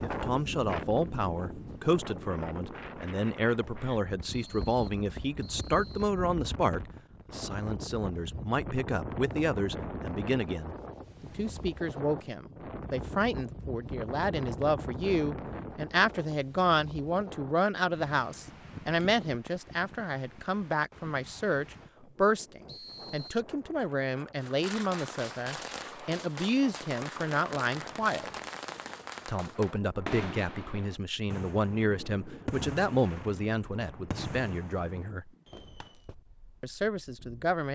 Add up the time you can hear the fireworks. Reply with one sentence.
The fireworks can be heard for 12 seconds in total.